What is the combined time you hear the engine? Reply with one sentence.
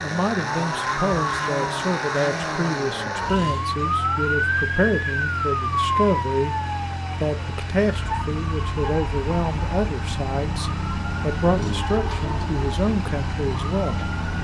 You can hear the engine for 14 seconds altogether.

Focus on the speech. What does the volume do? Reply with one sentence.
The volume of the speech stays about the same.